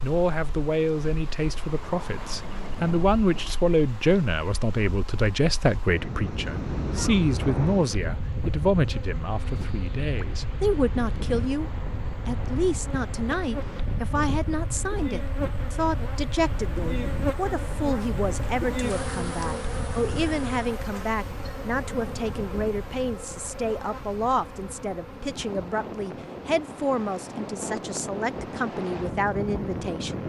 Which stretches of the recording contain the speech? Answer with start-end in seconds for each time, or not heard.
0.0-30.2.